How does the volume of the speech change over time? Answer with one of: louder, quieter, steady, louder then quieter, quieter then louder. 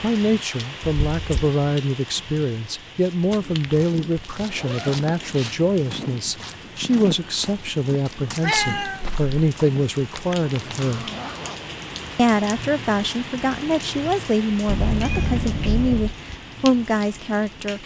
steady.